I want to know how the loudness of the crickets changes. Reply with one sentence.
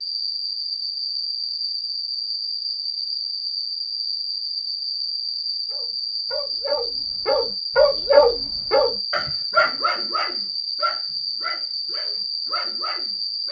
The volume of the crickets stays about the same.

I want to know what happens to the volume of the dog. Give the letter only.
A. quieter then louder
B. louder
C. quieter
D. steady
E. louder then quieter
E.